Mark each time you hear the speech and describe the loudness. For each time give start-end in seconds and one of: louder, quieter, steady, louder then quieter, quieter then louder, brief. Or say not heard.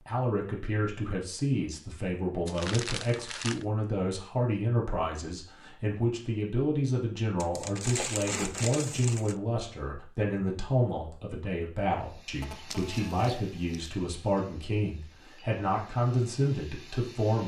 0.1-17.4 steady.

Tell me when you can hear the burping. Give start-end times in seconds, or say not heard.
not heard.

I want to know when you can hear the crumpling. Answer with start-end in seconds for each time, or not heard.
2.5-3.6, 7.3-9.3, 12.7-13.9.